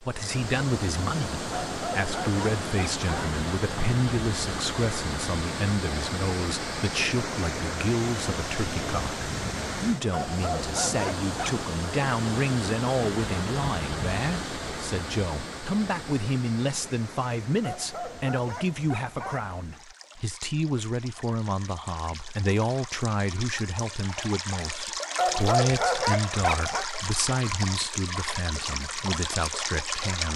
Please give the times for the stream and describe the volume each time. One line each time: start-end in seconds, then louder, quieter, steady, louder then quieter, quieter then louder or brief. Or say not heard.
0.0-30.3 quieter then louder.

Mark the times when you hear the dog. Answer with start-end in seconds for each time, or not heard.
1.5-3.4, 10.1-11.7, 17.6-19.5, 25.1-26.9.